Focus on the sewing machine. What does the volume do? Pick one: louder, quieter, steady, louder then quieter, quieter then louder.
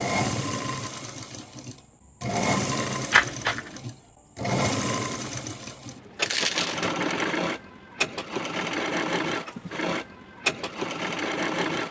steady.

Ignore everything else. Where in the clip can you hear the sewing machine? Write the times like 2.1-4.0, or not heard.
0.0-11.8.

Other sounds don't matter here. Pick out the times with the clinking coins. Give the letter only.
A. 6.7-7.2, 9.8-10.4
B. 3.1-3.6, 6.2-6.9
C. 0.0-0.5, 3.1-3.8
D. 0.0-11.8
B.